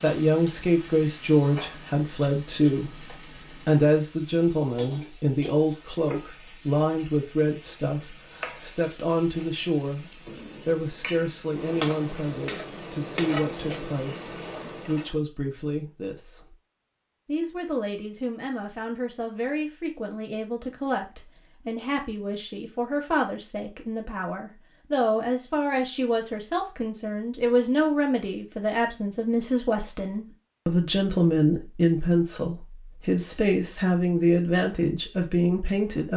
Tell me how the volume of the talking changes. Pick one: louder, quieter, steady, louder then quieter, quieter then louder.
quieter then louder.